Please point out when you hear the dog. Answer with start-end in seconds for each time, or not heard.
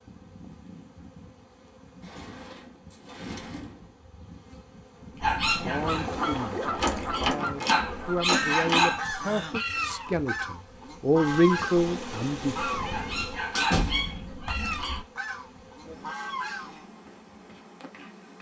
5.2-9.0, 12.8-15.0.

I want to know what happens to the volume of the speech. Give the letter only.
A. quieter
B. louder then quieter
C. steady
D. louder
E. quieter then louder
D.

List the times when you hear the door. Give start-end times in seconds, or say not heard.
2.0-3.9, 6.8-8.8, 13.6-14.3.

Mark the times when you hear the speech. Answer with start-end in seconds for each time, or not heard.
5.2-12.6.